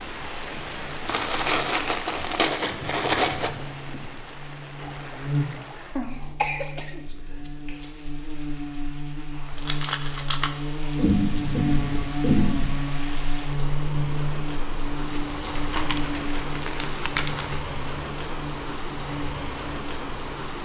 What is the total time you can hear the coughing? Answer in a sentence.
The coughing can be heard for 4 seconds in total.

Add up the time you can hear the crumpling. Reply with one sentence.
The crumpling can be heard for 6 seconds in total.